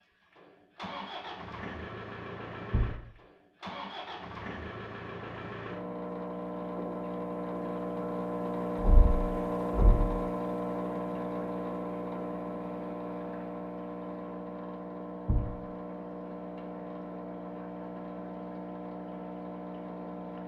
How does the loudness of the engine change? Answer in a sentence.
The loudness of the engine goes up, then down.